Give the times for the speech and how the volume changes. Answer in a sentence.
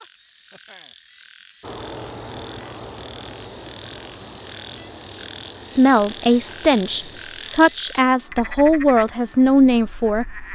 The speech can be heard from 5.7 to 10.3 s, getting quieter then louder.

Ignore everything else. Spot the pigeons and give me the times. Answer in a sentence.
You can't hear the pigeons here.